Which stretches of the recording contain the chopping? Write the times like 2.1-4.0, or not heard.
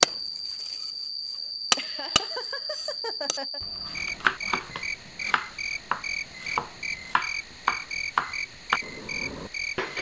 0.0-0.8, 1.7-9.9.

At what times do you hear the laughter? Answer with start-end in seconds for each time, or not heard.
1.8-3.6.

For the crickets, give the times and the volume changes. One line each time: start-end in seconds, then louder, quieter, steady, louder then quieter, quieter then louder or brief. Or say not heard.
0.0-9.9 steady.